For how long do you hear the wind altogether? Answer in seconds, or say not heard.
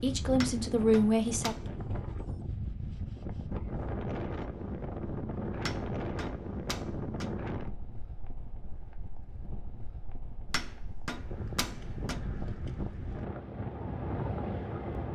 15 s.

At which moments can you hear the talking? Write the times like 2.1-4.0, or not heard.
0.0-1.6.